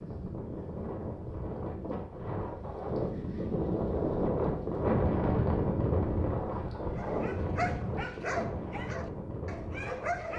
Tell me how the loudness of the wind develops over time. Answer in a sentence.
The volume of the wind goes up, then down.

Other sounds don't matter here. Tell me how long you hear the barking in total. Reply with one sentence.
You can hear the barking for 3 seconds altogether.